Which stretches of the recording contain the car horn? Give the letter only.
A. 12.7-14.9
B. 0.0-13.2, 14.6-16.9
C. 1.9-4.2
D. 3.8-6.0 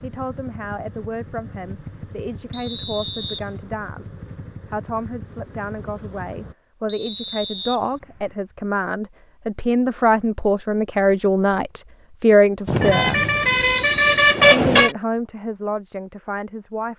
A.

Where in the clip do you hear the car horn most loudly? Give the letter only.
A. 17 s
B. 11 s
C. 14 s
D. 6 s
C.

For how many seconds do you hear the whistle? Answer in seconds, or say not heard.
4 s.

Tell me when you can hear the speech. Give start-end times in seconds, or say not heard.
0.0-13.2, 14.6-16.9.